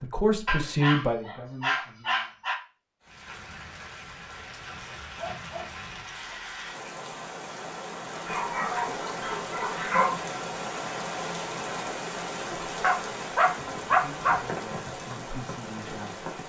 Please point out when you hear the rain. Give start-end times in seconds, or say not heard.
3.0-16.4.